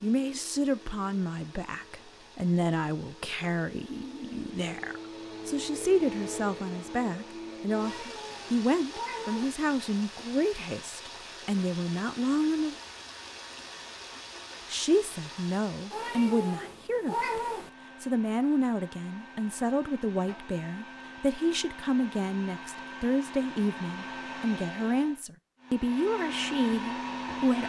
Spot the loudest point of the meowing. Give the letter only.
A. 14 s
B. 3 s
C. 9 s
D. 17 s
D.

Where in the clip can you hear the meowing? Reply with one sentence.
You can hear the meowing from 7.8 to 9.6 s and from 15.9 to 17.7 s.